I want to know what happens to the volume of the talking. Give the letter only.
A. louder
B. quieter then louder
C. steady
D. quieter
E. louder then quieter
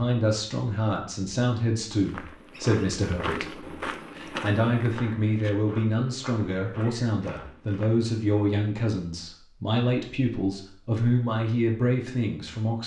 C.